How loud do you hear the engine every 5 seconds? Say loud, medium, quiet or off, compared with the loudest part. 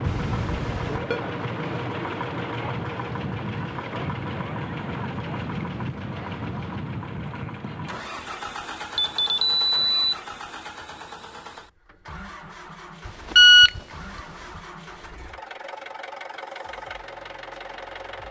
loud, loud, medium, medium.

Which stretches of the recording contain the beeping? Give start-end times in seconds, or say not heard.
0.1-1.2, 8.9-10.2, 13.1-14.2.